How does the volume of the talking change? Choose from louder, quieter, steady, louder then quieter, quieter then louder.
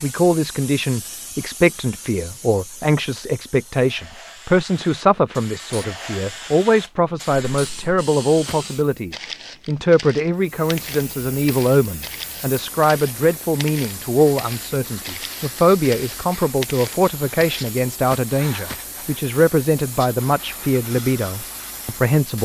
steady.